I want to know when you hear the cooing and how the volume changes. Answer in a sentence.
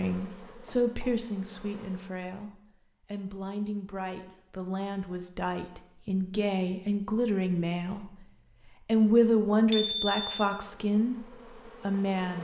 You can't hear the cooing here.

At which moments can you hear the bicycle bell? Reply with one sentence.
You can hear the bicycle bell from 9.7 to 10.4 s.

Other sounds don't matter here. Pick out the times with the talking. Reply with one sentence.
You can hear the talking from 0.0 to 8.1 s and from 8.8 to 12.3 s.